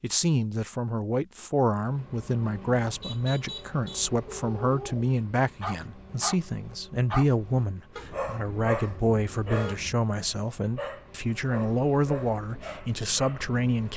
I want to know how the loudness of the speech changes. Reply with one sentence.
The volume of the speech stays about the same.